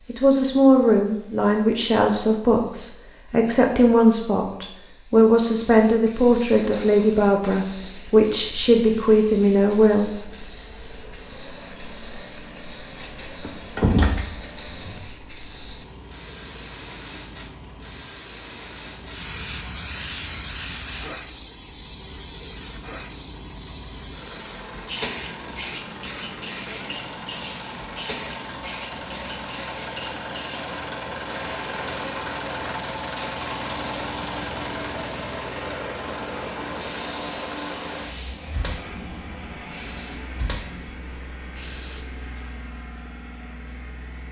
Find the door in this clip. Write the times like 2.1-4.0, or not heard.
13.4-14.9.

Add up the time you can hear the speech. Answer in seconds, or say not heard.
10 s.